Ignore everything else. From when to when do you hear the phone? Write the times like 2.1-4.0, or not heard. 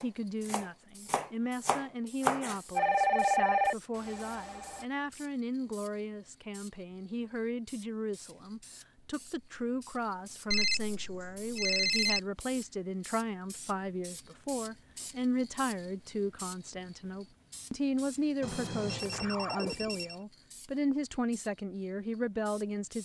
2.8-4.8, 10.5-12.2, 18.4-20.1.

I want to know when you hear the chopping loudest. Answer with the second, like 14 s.
2 s.